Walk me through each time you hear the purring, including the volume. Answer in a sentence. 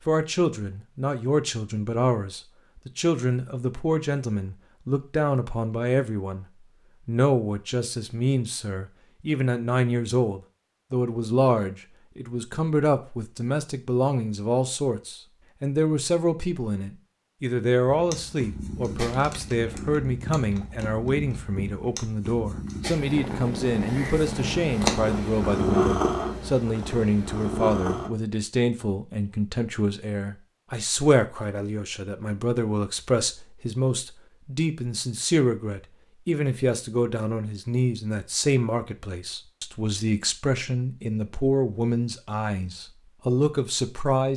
You can hear the purring from 17.9 to 28.1 s, getting louder.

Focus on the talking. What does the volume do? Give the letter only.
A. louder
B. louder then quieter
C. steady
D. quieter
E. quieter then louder
C.